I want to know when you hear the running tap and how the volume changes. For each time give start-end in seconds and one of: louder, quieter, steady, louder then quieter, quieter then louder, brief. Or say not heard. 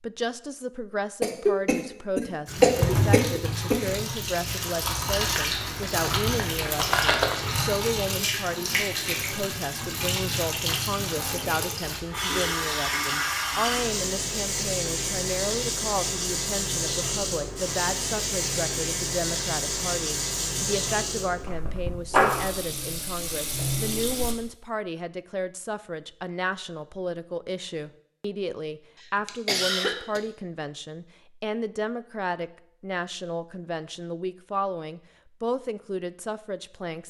2.5-24.4 steady.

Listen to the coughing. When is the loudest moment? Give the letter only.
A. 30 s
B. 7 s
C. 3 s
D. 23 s
C.